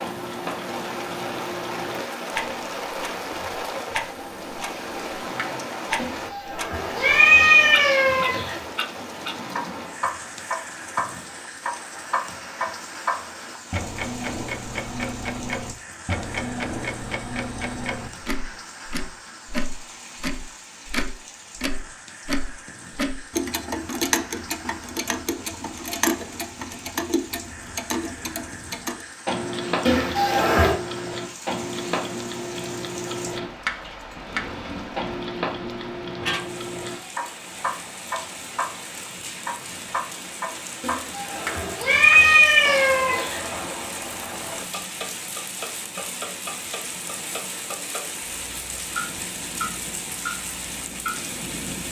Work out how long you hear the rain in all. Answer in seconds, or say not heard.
52 s.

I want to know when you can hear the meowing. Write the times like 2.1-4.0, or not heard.
6.0-8.7, 29.9-30.8, 40.8-43.5.